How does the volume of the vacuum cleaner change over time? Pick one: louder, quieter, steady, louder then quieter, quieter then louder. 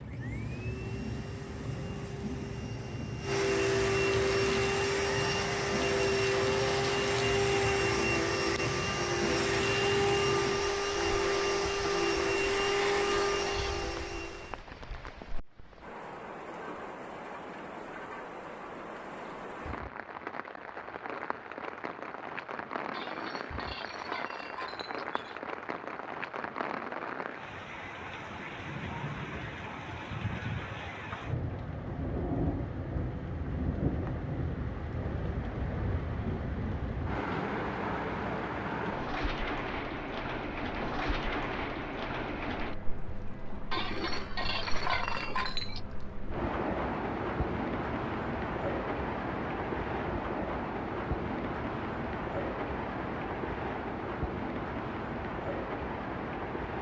louder.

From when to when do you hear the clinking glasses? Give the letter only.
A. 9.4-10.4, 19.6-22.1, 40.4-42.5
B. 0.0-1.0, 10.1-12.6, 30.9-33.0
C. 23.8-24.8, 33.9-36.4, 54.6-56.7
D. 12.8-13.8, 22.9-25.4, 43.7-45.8
D.